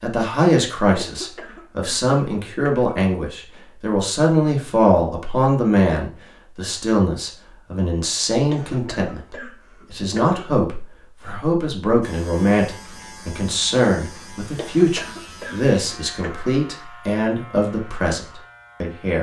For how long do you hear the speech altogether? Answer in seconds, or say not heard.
19 s.